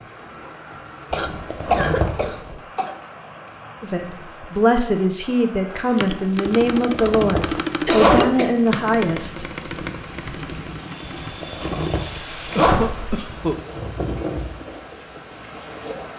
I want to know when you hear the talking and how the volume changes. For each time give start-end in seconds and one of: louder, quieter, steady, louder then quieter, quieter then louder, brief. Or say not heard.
3.8-9.4 steady.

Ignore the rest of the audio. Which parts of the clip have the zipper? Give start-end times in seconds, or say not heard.
1.1-2.6, 6.5-8.2, 11.1-13.6.